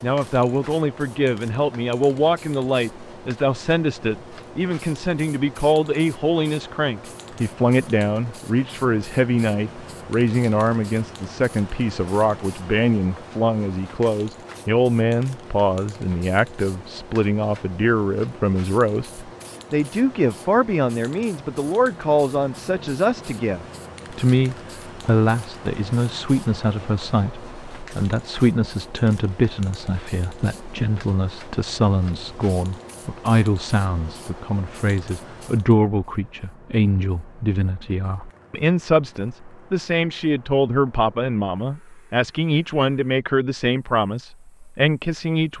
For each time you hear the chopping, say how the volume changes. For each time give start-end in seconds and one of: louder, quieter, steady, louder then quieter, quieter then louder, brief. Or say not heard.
not heard.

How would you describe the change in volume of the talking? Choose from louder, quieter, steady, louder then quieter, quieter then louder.
steady.